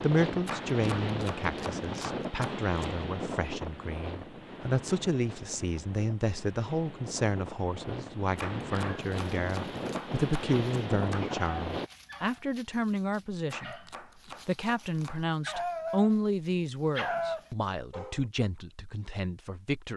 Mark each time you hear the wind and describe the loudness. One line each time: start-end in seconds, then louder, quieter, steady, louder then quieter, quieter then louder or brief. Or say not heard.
0.0-11.9 quieter then louder.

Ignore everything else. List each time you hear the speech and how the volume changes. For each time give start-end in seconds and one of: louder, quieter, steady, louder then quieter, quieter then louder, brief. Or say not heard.
0.0-13.8 steady
14.4-19.9 louder then quieter.